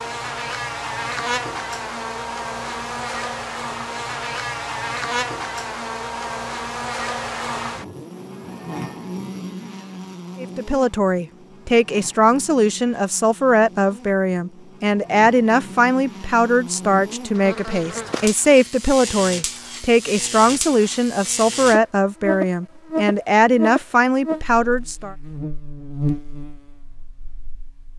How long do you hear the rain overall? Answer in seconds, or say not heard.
not heard.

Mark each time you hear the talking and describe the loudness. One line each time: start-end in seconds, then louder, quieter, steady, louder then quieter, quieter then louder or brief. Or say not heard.
10.4-25.1 steady.